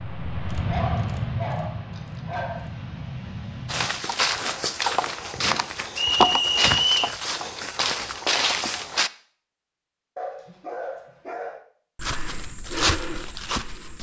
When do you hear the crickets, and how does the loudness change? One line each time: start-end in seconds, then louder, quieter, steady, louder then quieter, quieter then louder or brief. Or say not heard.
not heard.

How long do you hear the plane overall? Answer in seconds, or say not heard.
4 s.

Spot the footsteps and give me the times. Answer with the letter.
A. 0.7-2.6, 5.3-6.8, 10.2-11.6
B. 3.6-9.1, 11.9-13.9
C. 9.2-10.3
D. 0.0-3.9
B.